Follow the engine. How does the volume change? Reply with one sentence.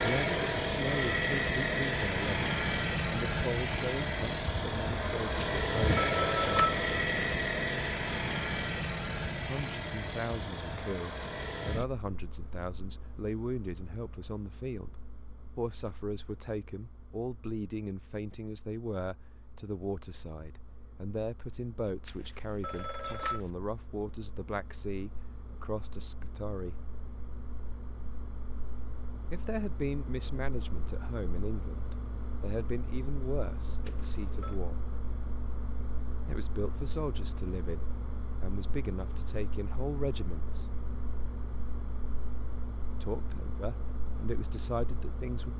The volume of the engine goes down, then up.